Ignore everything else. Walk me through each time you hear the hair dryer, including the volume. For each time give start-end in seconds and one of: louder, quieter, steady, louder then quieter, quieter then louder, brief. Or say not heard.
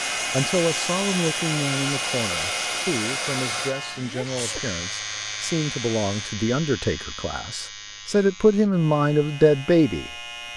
0.0-6.3 quieter.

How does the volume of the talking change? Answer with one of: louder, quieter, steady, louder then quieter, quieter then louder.
louder.